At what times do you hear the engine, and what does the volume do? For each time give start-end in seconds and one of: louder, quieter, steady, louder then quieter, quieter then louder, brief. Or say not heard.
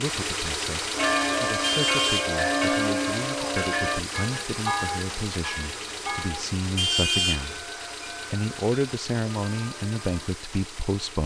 0.0-11.2 quieter.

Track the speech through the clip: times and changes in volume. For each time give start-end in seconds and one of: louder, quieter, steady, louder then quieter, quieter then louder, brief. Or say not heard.
0.0-7.7 louder
8.3-11.2 brief.